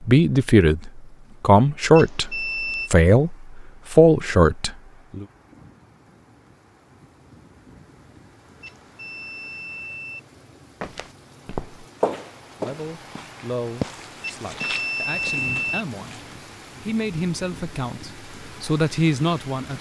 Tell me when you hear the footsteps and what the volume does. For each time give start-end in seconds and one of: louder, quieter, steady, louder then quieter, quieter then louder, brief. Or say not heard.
10.8-16.4 quieter.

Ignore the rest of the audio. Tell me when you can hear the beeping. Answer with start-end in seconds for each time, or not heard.
1.9-2.9, 8.6-10.2, 14.2-15.8.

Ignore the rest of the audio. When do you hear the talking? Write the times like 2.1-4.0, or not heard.
0.0-5.2, 12.6-16.2, 16.8-19.7.